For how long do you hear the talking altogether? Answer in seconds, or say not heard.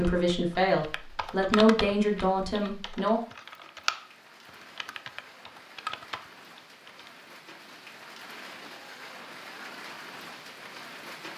3 s.